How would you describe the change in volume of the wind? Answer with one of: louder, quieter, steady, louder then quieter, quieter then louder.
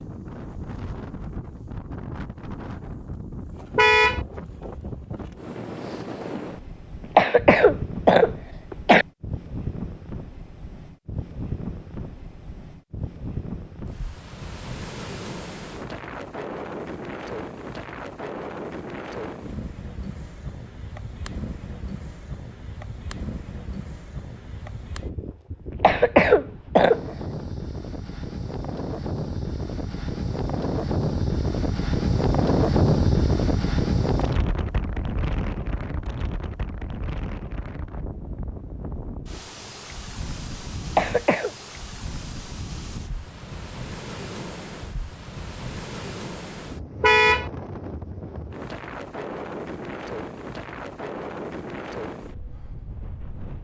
louder then quieter.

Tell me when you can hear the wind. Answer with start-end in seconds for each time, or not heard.
0.0-53.6.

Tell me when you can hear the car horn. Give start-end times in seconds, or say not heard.
3.8-4.2, 47.0-47.5.